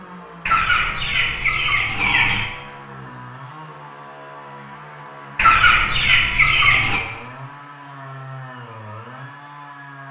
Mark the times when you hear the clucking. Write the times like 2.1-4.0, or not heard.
0.5-2.5, 5.3-7.0.